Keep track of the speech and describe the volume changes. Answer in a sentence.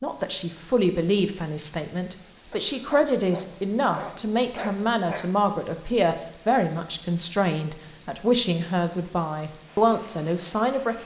The loudness of the speech stays about the same.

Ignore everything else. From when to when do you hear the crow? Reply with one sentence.
You can't hear the crow here.